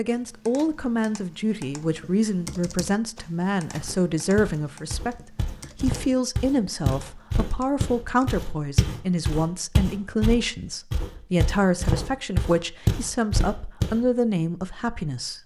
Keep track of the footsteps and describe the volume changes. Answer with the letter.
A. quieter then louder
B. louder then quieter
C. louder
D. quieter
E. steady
C.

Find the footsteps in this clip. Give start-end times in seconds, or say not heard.
3.7-14.1.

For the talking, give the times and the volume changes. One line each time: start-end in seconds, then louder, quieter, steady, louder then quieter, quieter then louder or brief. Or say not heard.
0.0-15.4 steady.